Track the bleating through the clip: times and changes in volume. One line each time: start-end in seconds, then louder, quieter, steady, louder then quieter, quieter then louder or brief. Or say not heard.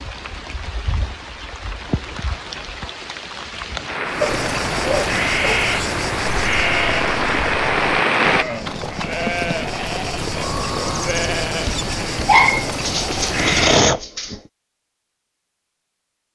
4.0-13.8 steady.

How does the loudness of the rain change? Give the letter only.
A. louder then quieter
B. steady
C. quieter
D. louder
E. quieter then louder
D.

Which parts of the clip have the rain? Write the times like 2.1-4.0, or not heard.
0.0-8.4.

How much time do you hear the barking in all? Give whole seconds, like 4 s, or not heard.
4 s.